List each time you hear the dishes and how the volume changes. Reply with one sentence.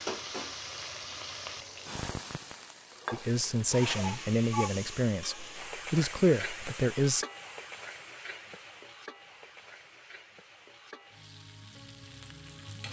The dishes can't be heard in this clip.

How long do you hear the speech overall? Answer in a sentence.
You can hear the speech for 4 seconds altogether.